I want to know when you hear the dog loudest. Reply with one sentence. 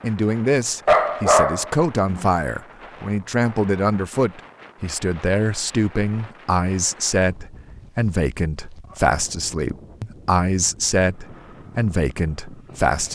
The volume of the dog peaks at 1 second.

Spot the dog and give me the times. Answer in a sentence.
You can hear the dog from 0.8 to 2.3 s.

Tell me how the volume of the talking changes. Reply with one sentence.
The volume of the talking stays about the same.